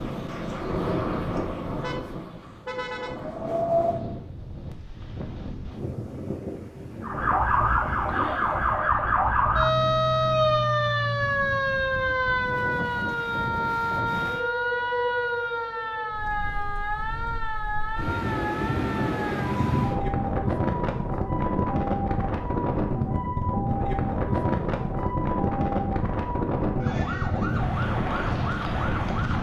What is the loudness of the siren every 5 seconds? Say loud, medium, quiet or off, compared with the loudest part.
off, loud, loud, medium, medium, medium.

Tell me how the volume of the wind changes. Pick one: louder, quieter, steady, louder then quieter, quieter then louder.
quieter then louder.